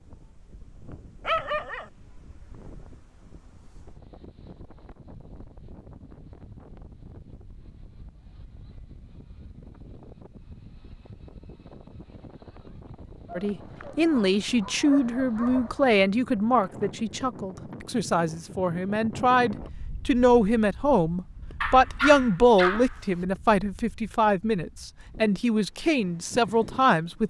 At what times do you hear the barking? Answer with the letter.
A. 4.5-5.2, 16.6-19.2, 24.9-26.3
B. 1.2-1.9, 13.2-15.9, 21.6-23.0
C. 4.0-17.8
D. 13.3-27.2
B.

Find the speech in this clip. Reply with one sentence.
The speech can be heard from 13.3 to 27.2 s.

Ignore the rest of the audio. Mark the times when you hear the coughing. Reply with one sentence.
You can't hear the coughing here.